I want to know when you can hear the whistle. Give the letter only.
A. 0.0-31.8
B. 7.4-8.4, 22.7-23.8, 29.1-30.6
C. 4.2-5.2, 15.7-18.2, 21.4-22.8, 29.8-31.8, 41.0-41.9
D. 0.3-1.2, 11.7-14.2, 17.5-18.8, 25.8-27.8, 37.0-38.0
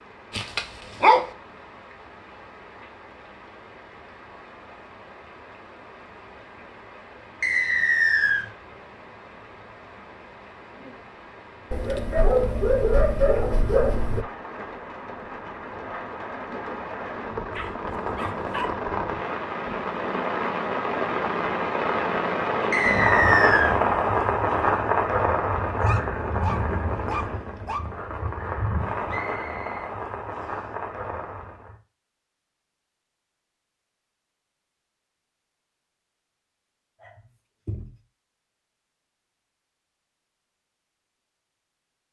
B.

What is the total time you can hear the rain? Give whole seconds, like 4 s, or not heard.
32 s.